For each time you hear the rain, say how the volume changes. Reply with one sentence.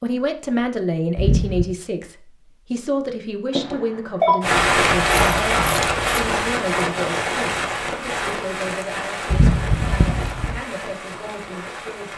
The rain can be heard from 4.4 to 12.1 s, getting quieter.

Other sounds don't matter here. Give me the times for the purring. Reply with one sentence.
The purring can't be heard in this clip.